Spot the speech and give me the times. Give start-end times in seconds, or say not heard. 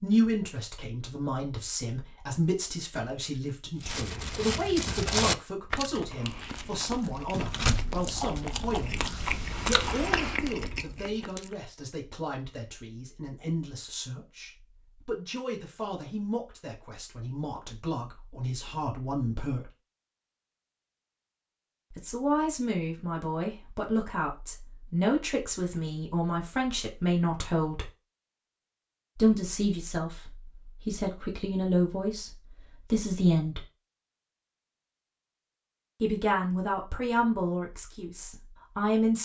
0.0-19.7, 21.9-27.9, 29.1-32.3, 32.9-33.6, 36.0-39.1.